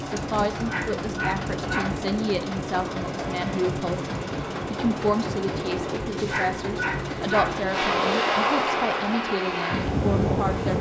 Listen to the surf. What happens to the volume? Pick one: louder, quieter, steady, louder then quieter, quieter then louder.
louder.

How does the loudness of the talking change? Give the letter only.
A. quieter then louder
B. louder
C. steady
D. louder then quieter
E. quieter
C.